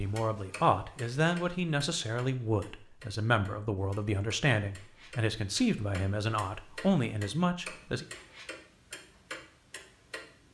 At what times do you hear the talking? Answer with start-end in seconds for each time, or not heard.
0.0-8.1.